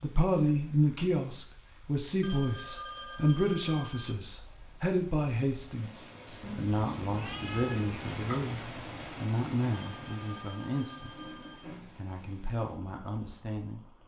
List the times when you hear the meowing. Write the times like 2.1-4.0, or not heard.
6.4-8.4.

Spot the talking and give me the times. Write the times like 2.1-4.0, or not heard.
0.0-8.6, 9.2-11.1, 11.9-13.8.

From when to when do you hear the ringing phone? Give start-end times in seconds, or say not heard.
2.2-4.2, 9.7-11.7.